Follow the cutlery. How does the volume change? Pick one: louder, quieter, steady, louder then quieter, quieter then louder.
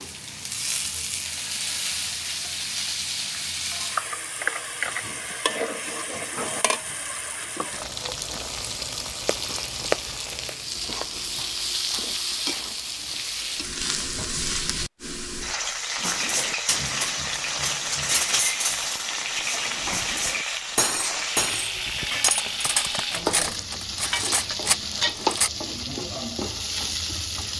steady.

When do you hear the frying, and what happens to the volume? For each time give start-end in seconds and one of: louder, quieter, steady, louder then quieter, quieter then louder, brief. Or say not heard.
0.0-27.5 steady.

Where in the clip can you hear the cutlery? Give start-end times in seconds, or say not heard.
16.0-25.5.